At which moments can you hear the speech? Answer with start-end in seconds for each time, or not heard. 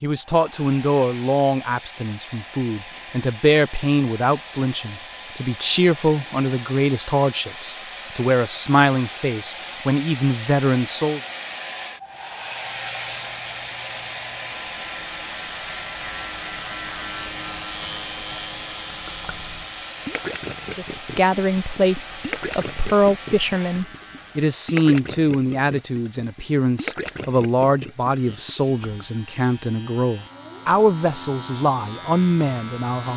0.0-11.2, 20.8-33.1.